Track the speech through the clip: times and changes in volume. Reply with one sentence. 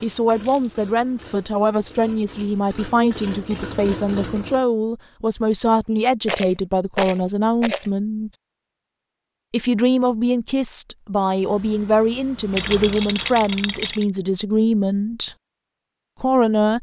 The speech can be heard from 0.0 to 8.3 s, at a steady volume; from 9.5 to 15.3 s, at a steady volume; and briefly from 16.2 to 16.7 s.